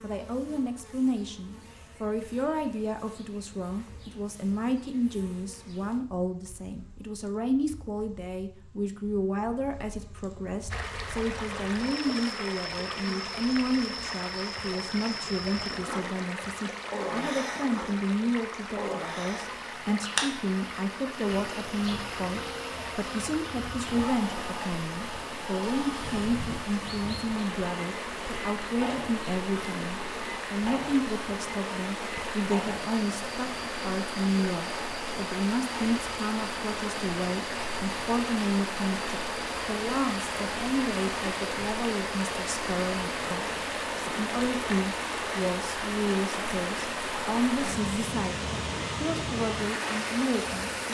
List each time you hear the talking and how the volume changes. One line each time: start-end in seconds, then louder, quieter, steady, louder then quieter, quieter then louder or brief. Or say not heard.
0.0-50.7 steady.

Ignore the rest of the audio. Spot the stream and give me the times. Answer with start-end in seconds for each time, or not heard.
10.7-50.8.